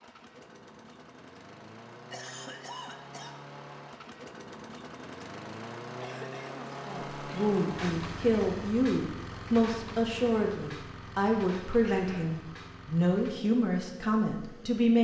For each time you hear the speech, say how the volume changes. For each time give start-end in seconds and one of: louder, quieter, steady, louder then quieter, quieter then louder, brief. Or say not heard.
6.8-15.0 steady.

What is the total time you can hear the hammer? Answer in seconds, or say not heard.
not heard.